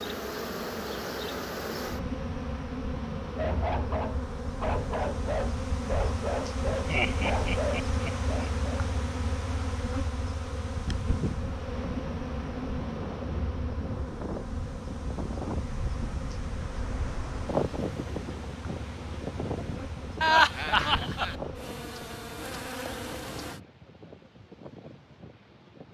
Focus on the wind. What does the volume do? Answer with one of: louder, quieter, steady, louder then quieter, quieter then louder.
louder then quieter.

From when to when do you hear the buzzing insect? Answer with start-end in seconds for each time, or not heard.
0.0-23.6.